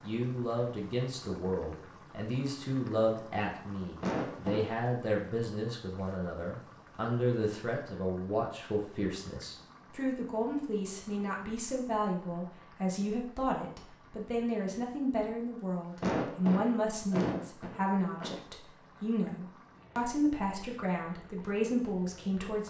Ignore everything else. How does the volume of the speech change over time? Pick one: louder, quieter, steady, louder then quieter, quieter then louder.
steady.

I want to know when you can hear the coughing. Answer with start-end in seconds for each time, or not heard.
4.0-4.8, 16.0-18.4.